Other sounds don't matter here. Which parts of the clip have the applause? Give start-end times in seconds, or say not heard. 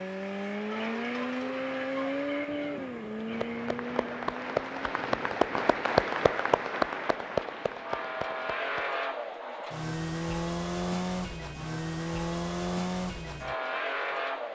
3.3-8.8.